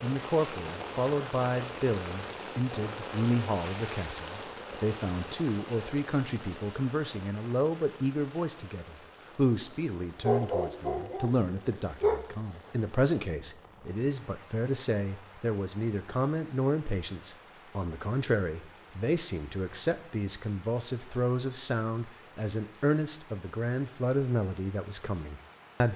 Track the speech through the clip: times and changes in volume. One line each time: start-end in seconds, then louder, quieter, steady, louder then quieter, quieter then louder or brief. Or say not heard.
0.0-25.9 steady.